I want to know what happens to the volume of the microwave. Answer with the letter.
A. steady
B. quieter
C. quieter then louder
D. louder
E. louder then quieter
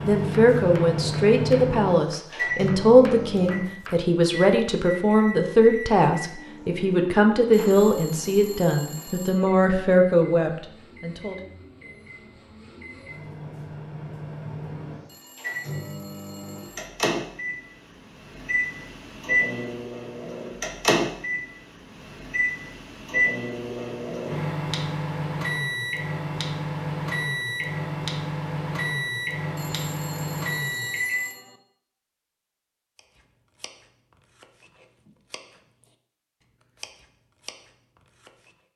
C.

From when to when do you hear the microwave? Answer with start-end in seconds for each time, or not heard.
0.0-31.2.